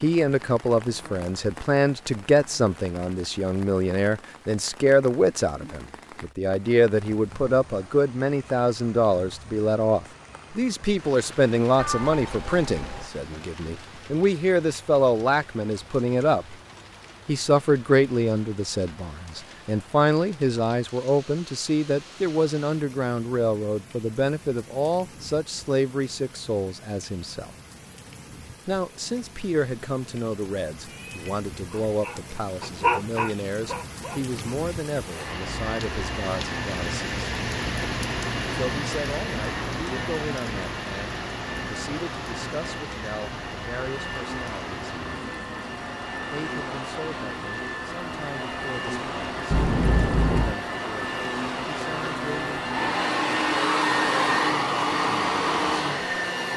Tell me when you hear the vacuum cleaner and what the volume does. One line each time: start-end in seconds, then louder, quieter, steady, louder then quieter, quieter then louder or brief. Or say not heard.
35.1-56.5 louder.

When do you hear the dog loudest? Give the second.
33 s.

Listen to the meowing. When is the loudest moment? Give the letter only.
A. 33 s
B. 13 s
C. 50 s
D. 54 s
C.